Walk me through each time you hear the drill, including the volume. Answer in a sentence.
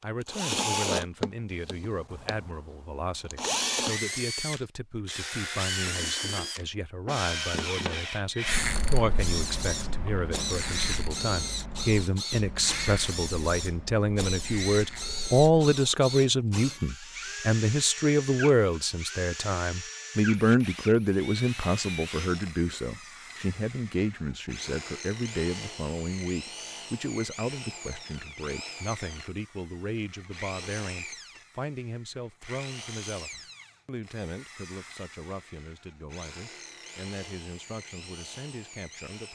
The drill can be heard from 0.2 to 39.3 s, getting quieter.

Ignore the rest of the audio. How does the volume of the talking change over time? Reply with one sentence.
The volume of the talking goes up, then down.